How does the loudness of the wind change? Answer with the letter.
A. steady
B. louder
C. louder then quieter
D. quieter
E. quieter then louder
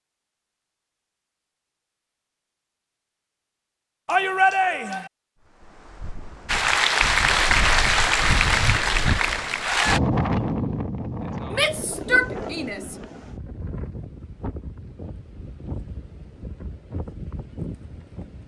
C.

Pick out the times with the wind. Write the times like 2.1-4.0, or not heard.
5.5-18.4.